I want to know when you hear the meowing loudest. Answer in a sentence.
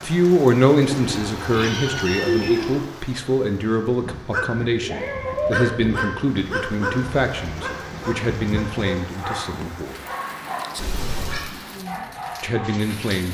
The loudest moment of the meowing is at 2 seconds.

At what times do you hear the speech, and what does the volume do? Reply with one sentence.
The speech can be heard from 0.0 to 9.9 s, getting quieter; and briefly from 12.4 to 13.2 s.